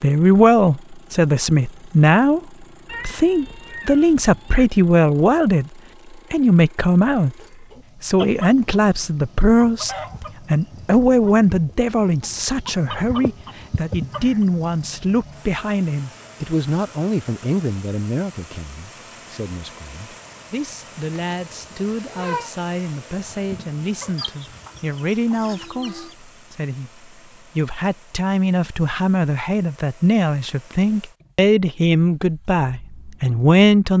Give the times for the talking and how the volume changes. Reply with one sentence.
The talking can be heard briefly from 0.0 to 2.4 s; briefly from 3.0 to 5.7 s; briefly from 6.3 to 7.3 s; and from 8.0 to 33.9 s, getting quieter then louder.